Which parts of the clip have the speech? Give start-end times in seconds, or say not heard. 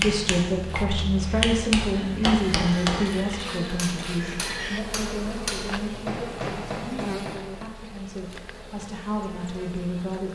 0.0-10.3.